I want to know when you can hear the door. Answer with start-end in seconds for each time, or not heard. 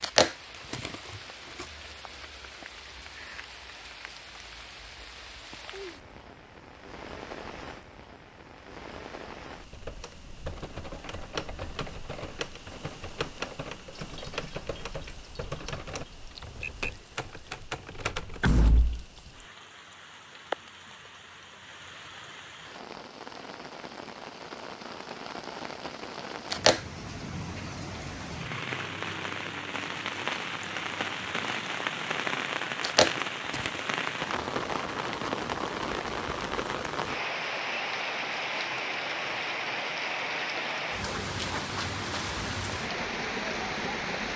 18.4-19.1.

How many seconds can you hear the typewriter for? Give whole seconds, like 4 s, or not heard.
9 s.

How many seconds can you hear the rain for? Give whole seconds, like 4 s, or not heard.
44 s.